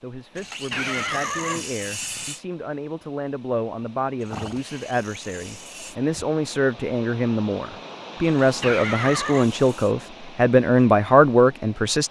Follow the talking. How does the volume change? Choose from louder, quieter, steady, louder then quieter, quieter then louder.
louder.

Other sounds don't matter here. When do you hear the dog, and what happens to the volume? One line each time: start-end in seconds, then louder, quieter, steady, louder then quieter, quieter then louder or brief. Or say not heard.
not heard.